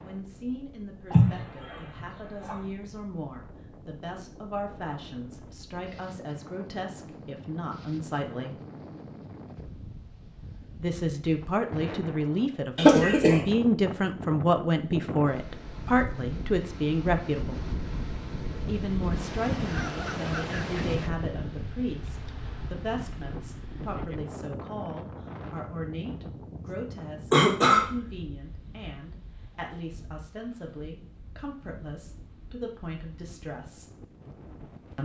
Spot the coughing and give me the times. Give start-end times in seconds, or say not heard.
1.1-2.5, 12.8-13.4, 27.3-27.9.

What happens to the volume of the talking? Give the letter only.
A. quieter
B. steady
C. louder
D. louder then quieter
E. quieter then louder
D.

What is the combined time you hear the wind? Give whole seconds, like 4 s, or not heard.
35 s.